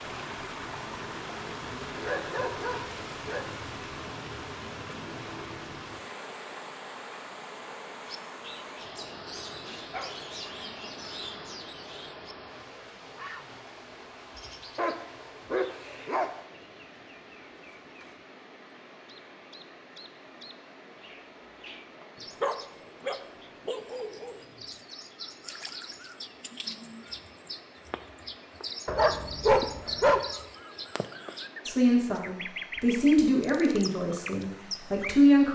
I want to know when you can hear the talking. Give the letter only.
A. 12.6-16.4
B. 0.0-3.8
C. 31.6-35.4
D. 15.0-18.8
C.